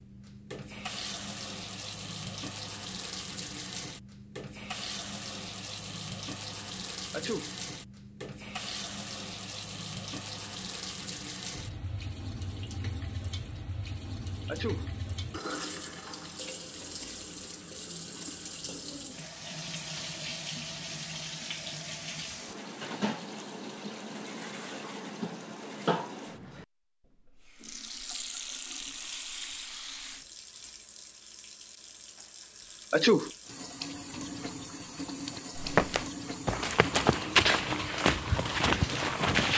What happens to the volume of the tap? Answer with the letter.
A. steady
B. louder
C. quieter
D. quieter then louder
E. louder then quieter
A.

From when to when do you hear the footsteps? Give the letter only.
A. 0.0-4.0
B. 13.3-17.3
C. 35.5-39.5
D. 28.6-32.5
C.